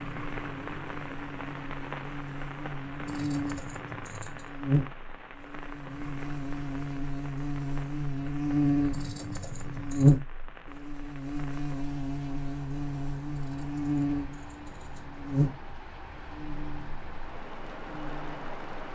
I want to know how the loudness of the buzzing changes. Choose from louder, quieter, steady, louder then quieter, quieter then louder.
louder then quieter.